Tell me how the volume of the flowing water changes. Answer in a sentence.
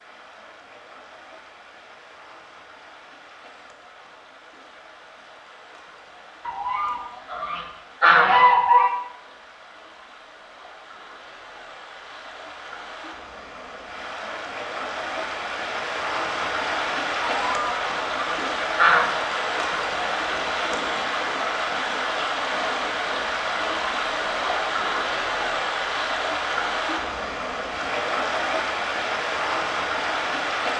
The volume of the flowing water goes up.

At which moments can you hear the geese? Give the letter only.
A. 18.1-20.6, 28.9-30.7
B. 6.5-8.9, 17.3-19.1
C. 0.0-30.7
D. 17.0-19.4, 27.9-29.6
B.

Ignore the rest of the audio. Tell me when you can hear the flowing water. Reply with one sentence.
You can hear the flowing water from 0.0 to 30.7 s.